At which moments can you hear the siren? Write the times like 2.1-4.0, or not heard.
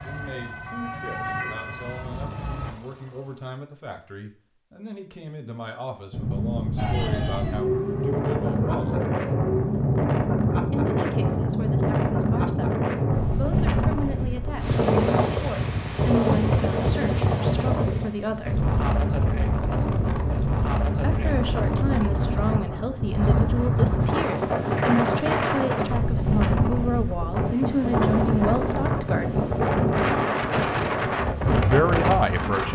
0.0-2.8, 6.8-9.8.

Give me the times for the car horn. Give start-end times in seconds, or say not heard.
not heard.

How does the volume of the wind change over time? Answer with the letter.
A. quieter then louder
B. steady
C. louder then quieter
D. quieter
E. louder
B.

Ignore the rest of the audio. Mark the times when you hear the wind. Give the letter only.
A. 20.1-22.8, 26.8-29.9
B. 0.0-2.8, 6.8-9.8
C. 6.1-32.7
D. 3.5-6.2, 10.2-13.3
C.